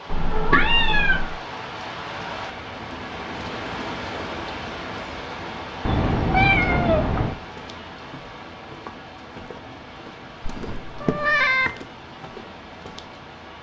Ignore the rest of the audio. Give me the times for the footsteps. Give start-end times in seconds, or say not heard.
7.4-13.2.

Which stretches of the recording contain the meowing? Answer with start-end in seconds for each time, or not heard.
0.1-1.4, 5.8-7.3, 10.4-11.7.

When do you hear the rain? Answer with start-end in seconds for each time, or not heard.
0.0-13.5.